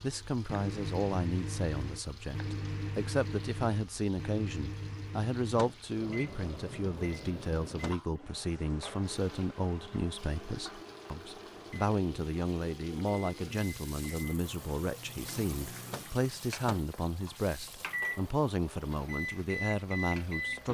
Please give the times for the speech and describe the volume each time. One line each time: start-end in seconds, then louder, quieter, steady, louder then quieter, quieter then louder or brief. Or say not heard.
0.0-20.6 steady.